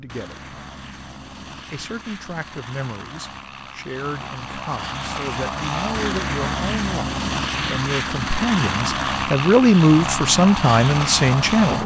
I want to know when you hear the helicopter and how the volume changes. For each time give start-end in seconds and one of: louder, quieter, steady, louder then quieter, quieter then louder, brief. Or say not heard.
0.0-11.8 louder.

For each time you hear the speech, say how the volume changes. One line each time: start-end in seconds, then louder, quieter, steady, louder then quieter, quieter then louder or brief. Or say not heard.
0.0-0.6 brief
1.7-11.8 louder.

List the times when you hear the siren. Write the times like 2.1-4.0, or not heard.
not heard.